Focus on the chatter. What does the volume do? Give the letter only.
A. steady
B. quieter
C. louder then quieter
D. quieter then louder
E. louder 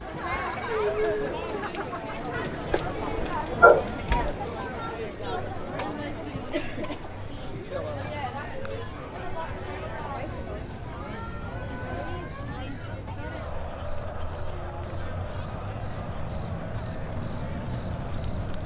B.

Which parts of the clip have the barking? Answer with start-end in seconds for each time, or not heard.
2.7-4.4.